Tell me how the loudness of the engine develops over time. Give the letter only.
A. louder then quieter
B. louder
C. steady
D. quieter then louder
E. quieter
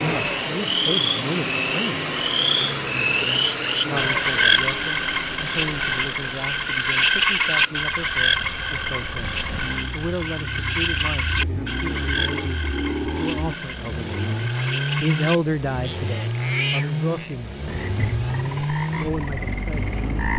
D.